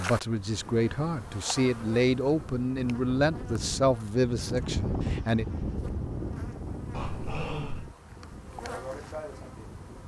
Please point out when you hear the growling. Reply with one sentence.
You can hear the growling from 6.9 to 7.9 s.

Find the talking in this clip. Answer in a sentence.
The talking can be heard from 0.0 to 5.5 s.